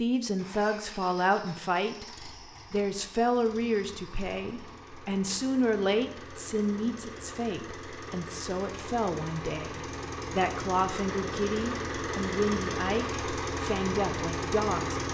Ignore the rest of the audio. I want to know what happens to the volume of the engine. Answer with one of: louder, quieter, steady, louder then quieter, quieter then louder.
louder.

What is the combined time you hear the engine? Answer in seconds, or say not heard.
15 s.